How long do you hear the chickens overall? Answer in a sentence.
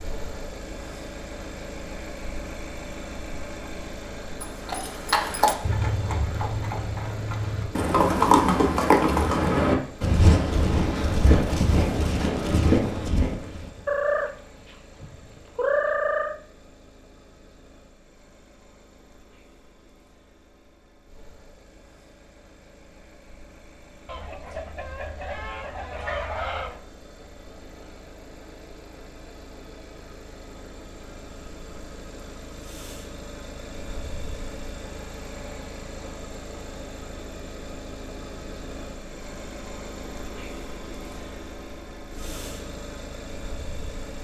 The chickens can be heard for 5 seconds in total.